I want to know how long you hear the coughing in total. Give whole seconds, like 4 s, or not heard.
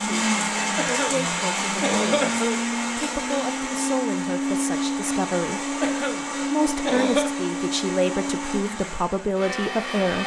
3 s.